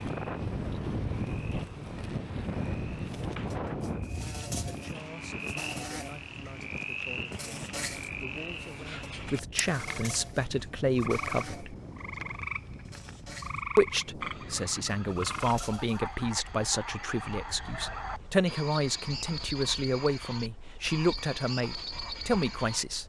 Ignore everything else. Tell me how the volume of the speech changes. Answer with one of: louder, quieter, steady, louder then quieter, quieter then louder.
louder.